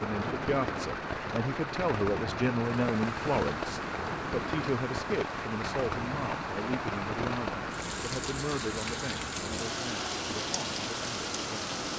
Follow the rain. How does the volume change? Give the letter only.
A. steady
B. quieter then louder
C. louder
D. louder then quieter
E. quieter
A.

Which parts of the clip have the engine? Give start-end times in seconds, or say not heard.
0.0-11.9.